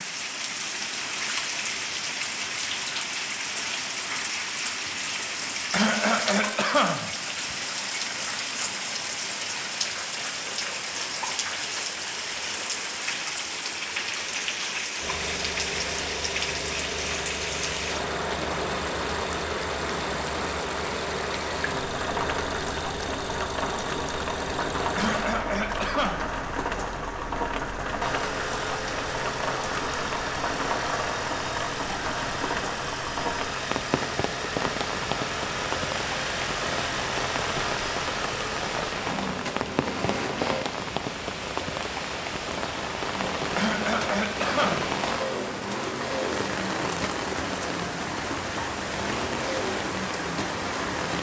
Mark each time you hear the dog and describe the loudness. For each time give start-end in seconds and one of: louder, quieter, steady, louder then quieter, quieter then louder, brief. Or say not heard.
not heard.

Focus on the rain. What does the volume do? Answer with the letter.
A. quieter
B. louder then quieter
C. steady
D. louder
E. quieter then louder
C.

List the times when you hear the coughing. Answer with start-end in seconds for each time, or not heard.
5.7-7.5, 24.9-26.2, 43.5-44.9.